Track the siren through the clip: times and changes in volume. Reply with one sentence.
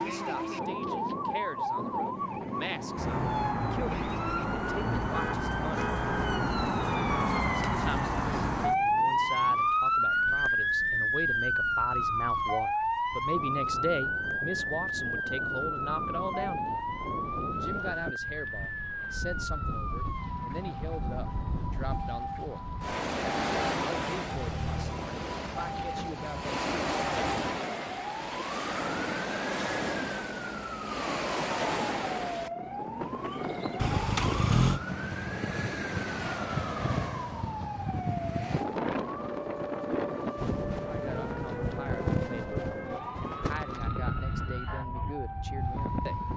The siren can be heard from 0.0 to 46.3 s, getting quieter.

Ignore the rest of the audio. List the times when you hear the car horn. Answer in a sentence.
The car horn can be heard from 5.0 to 7.5 s, from 24.3 to 25.1 s and from 33.8 to 34.8 s.